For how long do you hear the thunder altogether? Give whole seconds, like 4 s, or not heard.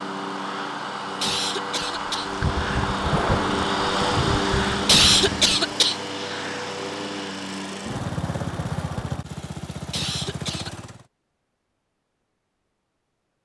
4 s.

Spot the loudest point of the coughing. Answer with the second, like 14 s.
5 s.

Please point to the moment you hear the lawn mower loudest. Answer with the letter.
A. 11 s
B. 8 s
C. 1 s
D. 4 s
D.